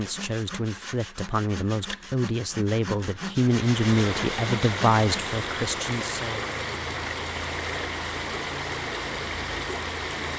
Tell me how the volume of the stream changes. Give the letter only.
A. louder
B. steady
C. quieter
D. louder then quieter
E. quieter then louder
B.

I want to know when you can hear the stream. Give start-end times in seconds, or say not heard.
3.4-10.3.